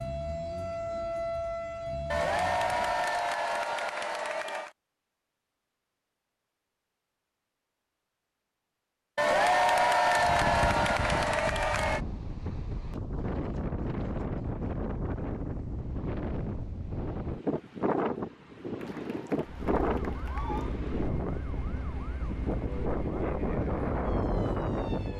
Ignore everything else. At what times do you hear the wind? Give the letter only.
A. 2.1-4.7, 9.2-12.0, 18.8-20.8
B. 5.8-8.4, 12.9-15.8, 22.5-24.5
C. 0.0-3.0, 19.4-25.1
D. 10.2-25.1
D.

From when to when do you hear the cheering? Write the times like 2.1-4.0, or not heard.
2.1-4.7, 9.2-12.0, 18.8-20.8.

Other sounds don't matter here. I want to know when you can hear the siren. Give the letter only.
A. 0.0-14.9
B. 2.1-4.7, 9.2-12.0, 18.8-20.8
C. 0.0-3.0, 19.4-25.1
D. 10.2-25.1
C.